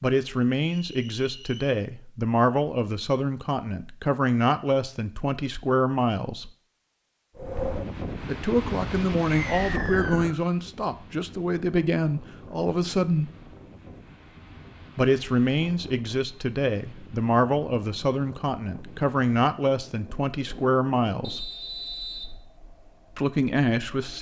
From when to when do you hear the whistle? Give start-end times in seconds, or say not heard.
0.8-1.8, 9.3-10.4, 21.2-22.3.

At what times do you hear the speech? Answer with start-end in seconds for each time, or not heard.
0.0-6.5, 8.2-13.3, 14.9-21.4, 23.1-24.1.